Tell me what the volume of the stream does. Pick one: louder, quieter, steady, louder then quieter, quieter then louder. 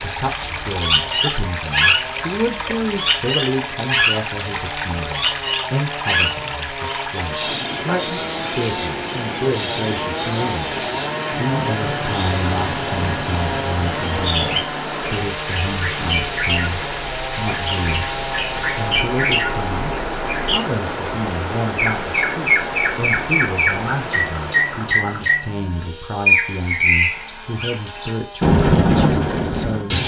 steady.